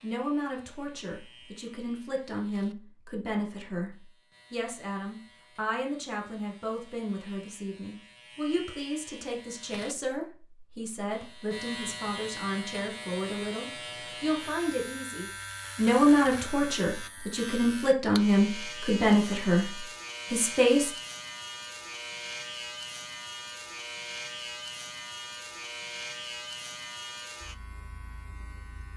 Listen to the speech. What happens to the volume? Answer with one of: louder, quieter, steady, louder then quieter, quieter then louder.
louder.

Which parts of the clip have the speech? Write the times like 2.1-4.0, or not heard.
0.0-20.9.